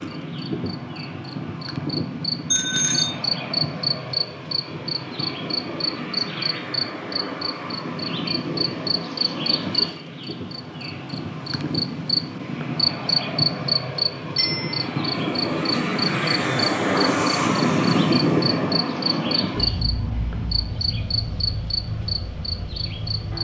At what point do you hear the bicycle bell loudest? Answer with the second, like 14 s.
3 s.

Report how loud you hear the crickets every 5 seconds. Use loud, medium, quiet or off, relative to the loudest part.
loud, loud, loud, loud, medium.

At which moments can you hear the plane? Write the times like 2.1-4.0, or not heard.
0.0-23.3.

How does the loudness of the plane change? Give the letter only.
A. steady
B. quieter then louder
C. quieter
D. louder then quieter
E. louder
D.